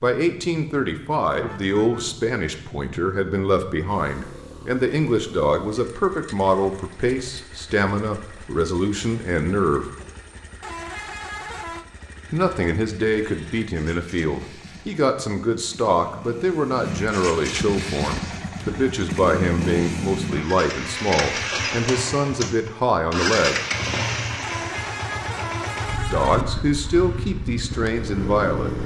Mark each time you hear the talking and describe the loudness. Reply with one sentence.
You can hear the talking from 0.0 to 9.8 s, at a steady volume; from 12.3 to 23.6 s, at a steady volume; and briefly from 26.1 to 28.8 s.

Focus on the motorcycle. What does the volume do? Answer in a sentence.
The volume of the motorcycle goes up.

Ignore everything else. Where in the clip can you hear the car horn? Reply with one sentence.
You can hear the car horn from 1.3 to 2.2 s, from 10.6 to 11.8 s and from 24.4 to 26.4 s.